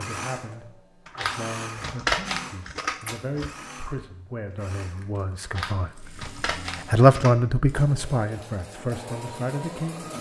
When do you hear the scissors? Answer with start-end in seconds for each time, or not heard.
1.1-3.5, 5.4-7.3.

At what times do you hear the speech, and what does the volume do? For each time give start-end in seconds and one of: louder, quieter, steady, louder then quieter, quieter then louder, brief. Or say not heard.
0.0-10.1 louder then quieter.